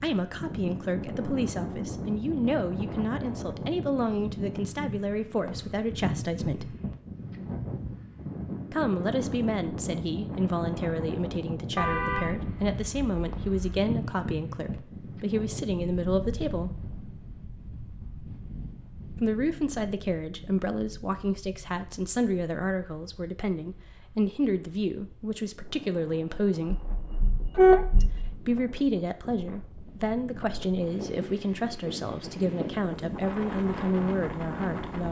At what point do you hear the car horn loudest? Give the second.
28 s.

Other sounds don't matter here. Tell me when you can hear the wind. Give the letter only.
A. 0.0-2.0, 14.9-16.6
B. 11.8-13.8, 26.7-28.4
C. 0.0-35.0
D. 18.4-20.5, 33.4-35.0
C.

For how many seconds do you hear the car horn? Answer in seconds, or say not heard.
4 s.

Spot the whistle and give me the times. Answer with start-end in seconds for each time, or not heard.
not heard.